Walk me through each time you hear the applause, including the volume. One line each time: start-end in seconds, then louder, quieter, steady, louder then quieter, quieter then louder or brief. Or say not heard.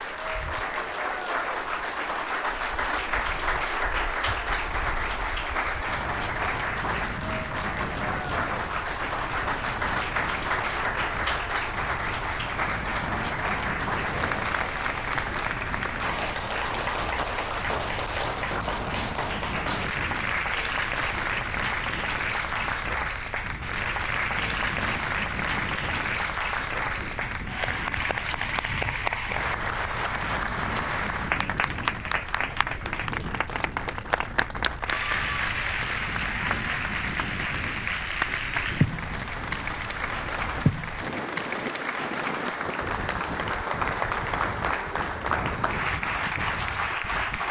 0.0-47.4 steady.